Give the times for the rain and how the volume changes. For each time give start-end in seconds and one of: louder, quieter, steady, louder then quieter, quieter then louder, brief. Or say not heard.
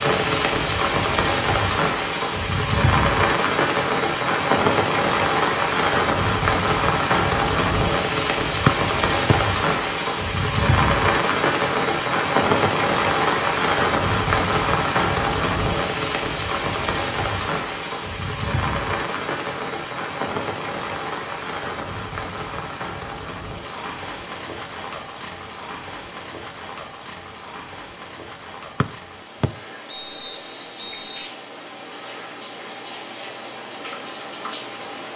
0.0-35.1 quieter.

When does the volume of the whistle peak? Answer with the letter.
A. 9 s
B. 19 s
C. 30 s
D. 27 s
A.